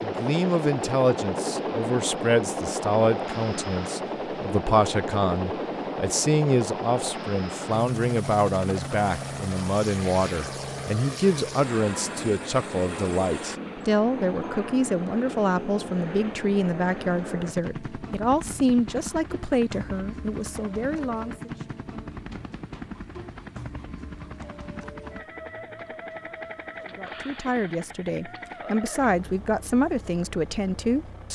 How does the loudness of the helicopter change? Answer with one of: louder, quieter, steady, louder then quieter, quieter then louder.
quieter.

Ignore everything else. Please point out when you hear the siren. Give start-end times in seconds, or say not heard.
not heard.